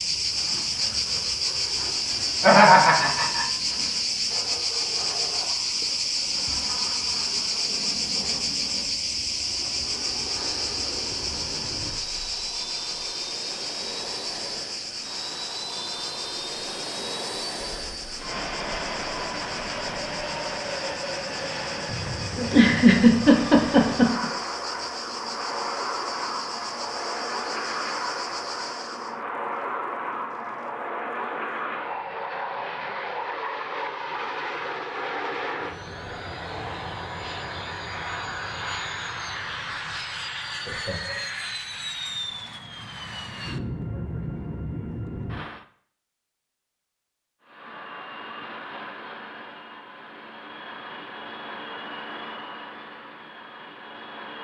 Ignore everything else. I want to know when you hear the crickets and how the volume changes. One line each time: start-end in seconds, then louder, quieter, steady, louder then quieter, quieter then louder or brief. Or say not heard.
0.0-29.2 quieter.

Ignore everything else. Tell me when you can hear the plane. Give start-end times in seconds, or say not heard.
0.0-45.6, 47.4-54.3.